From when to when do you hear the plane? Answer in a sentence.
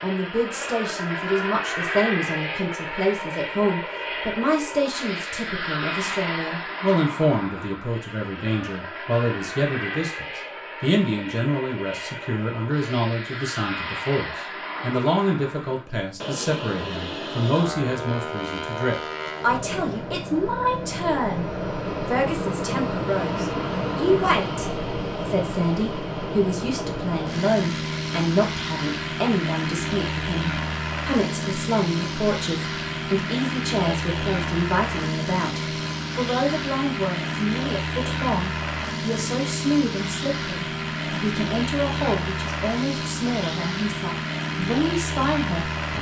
The plane can be heard from 0.0 to 45.9 s.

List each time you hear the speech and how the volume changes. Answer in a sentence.
The speech can be heard from 0.0 to 45.6 s, at a steady volume.